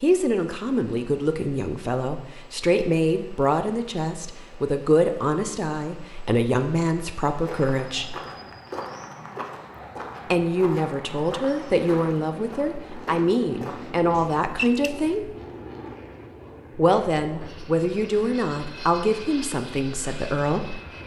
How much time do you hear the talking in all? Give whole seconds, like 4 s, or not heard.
17 s.